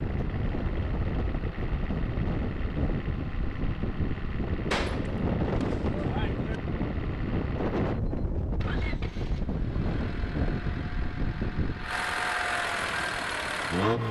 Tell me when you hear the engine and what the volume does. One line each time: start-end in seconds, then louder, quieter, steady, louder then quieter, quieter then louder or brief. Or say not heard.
0.0-14.0 louder.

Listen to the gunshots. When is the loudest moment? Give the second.
5 s.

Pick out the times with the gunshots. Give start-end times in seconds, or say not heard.
4.7-6.6.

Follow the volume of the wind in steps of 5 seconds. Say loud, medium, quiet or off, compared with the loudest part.
loud, loud, medium.